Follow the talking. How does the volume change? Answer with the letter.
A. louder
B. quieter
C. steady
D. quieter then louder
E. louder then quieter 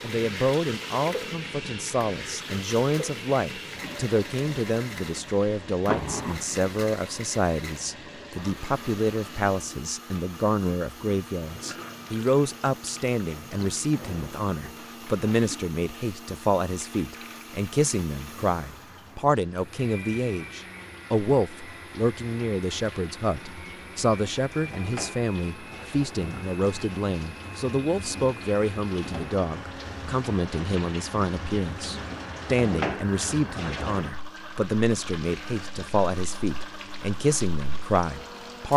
C.